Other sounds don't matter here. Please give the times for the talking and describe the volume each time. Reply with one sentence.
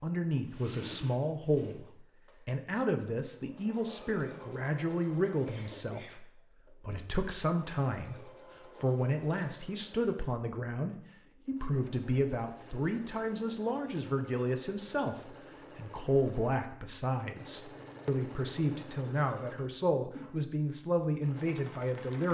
You can hear the talking from 0.0 to 22.2 s, at a steady volume.